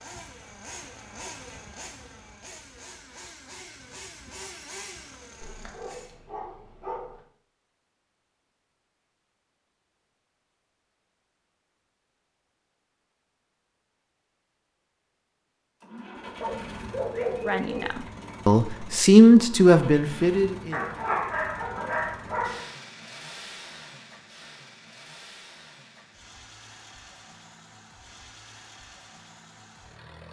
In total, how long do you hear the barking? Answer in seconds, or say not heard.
5 s.